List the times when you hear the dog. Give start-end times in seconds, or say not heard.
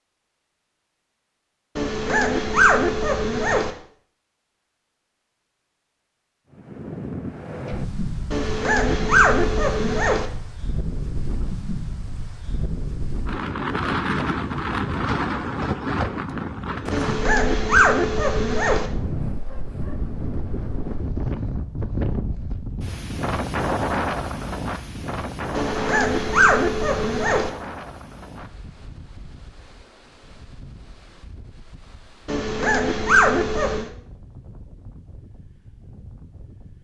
1.8-3.7, 8.3-10.2, 16.9-18.9, 25.5-27.5, 32.2-33.9.